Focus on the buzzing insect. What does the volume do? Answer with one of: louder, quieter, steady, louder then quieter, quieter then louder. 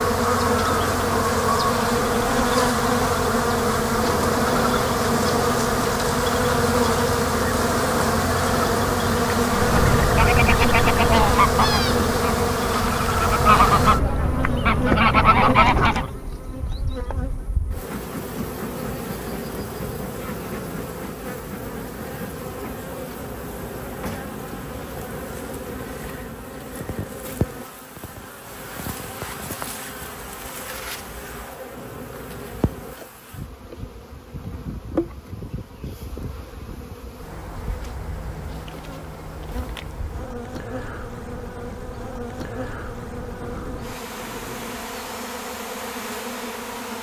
quieter.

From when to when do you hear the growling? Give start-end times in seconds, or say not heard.
43.4-45.0.